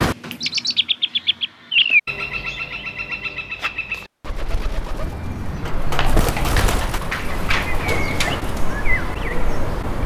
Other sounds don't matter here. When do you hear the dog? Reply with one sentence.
You can hear the dog from 6.0 to 8.5 s.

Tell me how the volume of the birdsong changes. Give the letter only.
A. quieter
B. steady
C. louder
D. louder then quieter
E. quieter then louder
E.